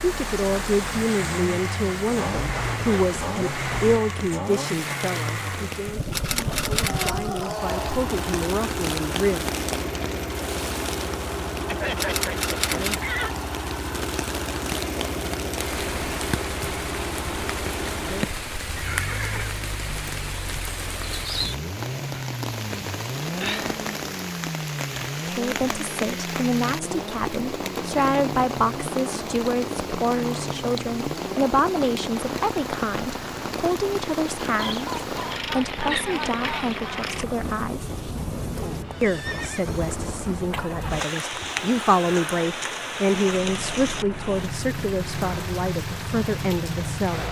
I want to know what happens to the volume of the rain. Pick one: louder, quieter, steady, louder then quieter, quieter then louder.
steady.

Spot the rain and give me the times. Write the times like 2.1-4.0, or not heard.
0.0-47.2.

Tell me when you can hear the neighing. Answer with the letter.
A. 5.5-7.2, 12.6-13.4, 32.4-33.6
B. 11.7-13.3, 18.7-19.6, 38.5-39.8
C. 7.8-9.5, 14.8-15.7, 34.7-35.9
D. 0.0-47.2
B.